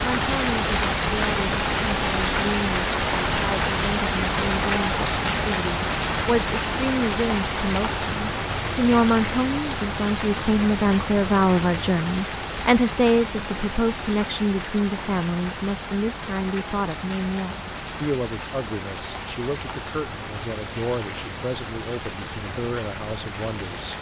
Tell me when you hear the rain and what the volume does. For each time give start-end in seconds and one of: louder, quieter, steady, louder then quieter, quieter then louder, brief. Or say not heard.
0.0-23.9 quieter.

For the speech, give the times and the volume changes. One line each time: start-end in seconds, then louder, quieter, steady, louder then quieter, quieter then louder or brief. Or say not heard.
0.1-23.9 louder then quieter.